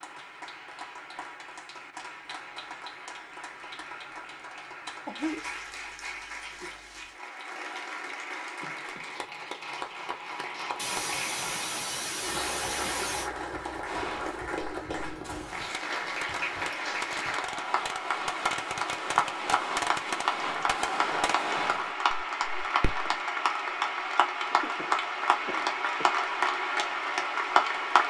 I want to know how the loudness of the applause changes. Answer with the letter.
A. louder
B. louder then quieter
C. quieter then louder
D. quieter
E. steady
A.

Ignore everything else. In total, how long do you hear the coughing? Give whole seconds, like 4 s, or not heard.
5 s.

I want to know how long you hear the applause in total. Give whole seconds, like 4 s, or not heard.
28 s.